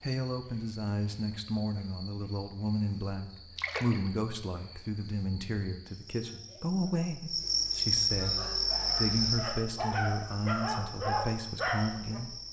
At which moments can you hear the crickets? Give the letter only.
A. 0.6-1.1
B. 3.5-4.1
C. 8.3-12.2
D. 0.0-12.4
D.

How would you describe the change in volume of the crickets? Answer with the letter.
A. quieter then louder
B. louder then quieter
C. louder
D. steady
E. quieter
B.